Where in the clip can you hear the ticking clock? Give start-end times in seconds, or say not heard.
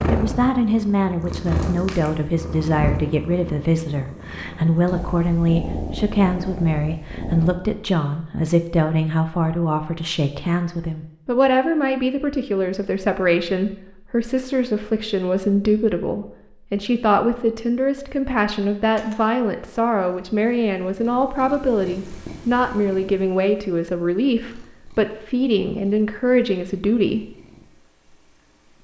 not heard.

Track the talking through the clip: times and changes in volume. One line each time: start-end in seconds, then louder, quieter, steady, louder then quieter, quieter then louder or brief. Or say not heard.
0.1-27.4 steady.